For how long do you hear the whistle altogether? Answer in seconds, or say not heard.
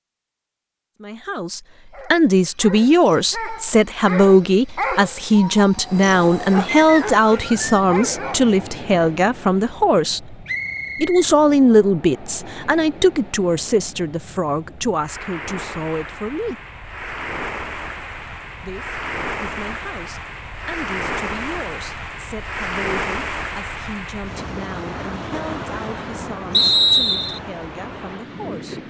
3 s.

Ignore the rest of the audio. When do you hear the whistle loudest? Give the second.
27 s.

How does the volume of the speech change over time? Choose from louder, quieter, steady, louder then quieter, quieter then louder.
quieter.